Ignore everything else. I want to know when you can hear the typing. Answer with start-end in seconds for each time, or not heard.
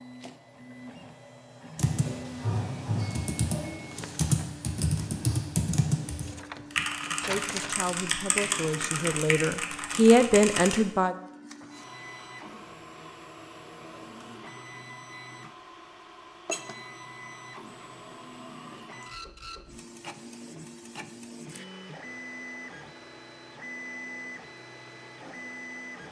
1.8-10.8.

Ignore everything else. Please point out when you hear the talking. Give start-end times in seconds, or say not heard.
7.1-11.2.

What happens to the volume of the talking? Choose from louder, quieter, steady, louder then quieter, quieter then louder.
louder.